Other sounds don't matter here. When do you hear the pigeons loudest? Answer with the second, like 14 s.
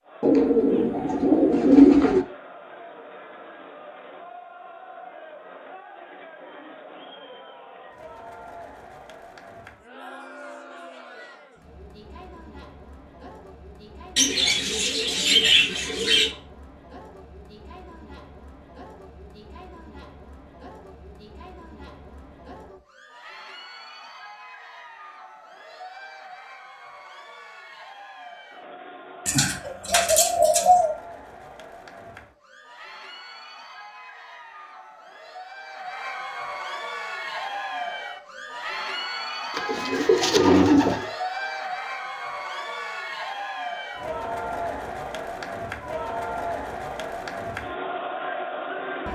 2 s.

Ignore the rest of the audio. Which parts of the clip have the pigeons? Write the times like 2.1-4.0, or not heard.
0.2-2.2, 14.2-16.3, 29.2-30.9, 39.5-41.1.